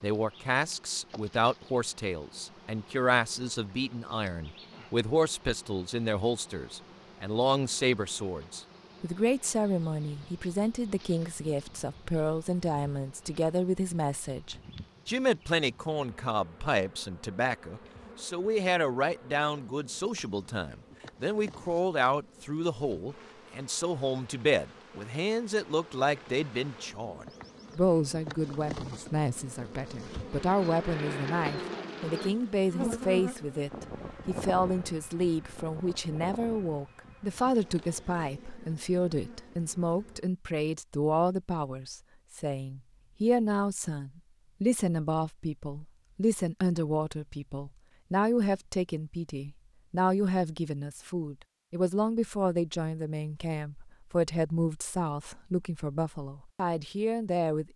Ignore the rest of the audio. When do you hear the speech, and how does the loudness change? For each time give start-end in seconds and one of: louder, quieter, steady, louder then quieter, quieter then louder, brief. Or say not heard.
0.0-57.7 steady.